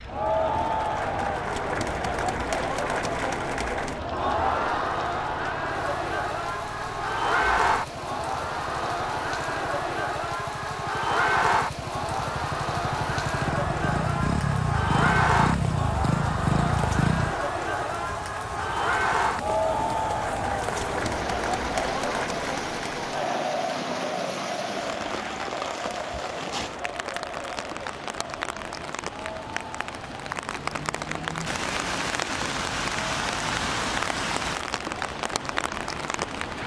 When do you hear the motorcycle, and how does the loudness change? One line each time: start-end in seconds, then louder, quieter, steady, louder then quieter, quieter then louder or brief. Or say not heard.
0.0-17.4 louder.